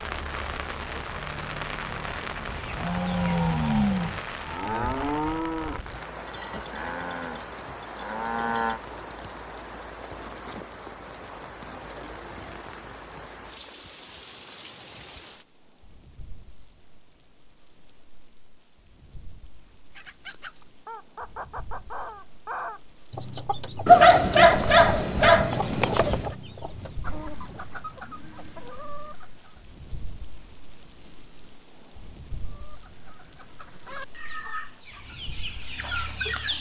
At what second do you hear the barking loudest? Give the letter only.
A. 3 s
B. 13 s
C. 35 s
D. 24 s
D.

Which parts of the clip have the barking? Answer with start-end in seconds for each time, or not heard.
23.9-26.4.